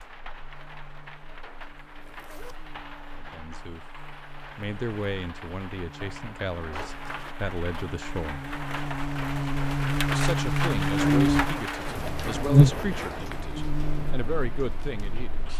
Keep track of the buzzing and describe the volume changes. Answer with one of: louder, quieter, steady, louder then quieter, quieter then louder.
louder.